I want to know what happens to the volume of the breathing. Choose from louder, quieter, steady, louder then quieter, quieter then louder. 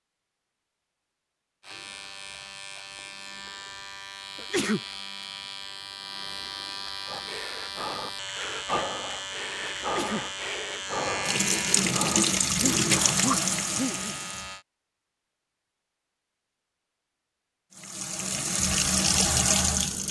louder.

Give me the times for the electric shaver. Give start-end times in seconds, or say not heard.
1.6-14.7.